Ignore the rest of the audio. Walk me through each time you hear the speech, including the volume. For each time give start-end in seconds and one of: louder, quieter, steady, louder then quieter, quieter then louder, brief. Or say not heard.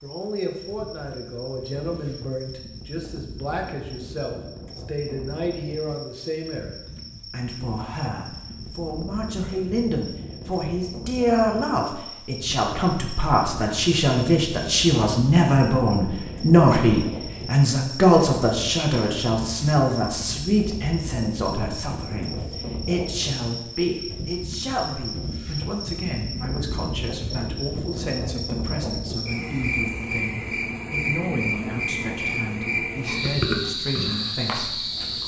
0.0-35.2 louder then quieter.